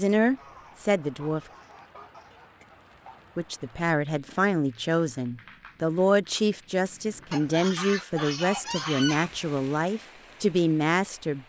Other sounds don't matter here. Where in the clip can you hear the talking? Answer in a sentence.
You can hear the talking from 0.0 to 1.4 s and from 3.4 to 11.4 s.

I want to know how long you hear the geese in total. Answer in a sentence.
The geese can be heard for 5 seconds in total.